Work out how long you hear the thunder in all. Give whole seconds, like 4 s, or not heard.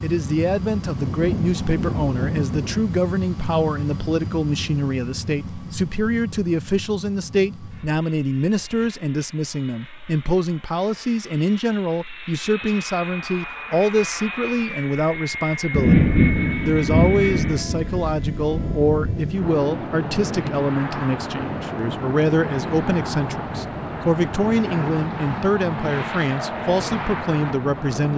6 s.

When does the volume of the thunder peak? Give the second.
16 s.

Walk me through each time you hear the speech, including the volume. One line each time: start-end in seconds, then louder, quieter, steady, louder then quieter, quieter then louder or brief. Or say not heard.
0.0-28.1 steady.